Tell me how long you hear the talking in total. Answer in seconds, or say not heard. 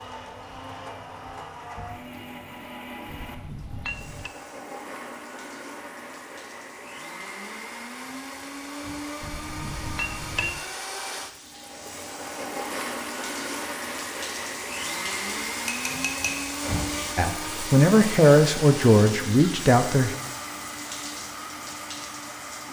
3 s.